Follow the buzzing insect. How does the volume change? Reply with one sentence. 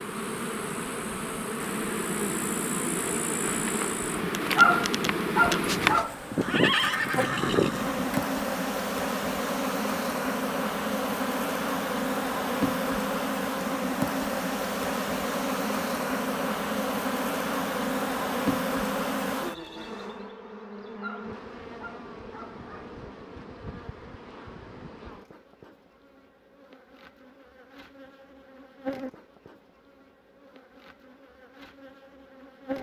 The loudness of the buzzing insect goes down.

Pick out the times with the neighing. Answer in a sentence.
You can hear the neighing from 5.6 to 8.2 s.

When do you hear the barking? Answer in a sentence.
The barking can be heard from 4.5 to 6.1 s and from 21.0 to 22.9 s.